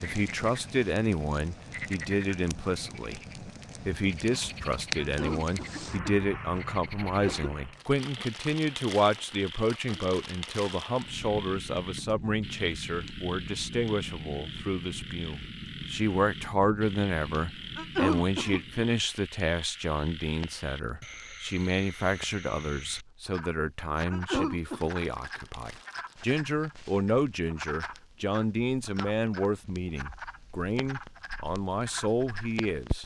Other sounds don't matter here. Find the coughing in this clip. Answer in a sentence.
The coughing can be heard from 5.0 to 7.5 s, from 17.8 to 18.9 s and from 24.1 to 24.8 s.